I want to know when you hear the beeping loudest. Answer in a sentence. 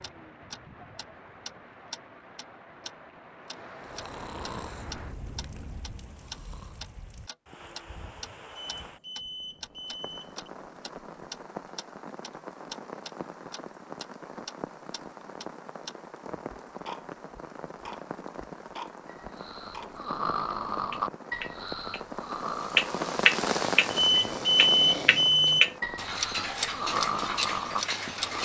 The loudest moment of the beeping is at 25 seconds.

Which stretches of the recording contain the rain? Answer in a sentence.
The rain can be heard from 0.0 to 28.4 s.